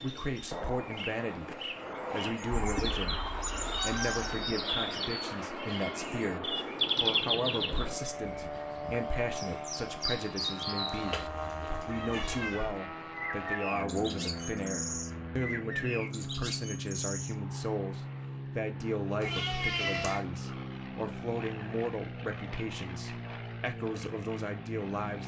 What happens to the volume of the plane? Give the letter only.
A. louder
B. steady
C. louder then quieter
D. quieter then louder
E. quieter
B.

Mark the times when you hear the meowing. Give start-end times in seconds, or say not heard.
2.7-4.5, 11.0-12.7, 19.2-20.2.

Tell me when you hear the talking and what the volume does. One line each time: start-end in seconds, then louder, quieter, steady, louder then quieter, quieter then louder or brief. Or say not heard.
0.0-25.2 steady.